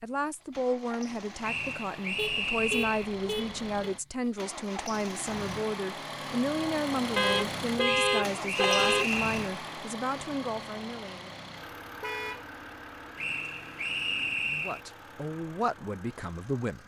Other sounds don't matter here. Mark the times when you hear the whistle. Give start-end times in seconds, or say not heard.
1.4-3.1, 7.8-9.4, 13.2-14.8.